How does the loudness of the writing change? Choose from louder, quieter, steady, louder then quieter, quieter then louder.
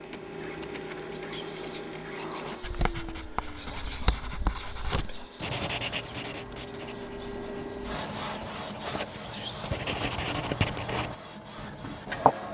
quieter then louder.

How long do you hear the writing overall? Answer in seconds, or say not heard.
10 s.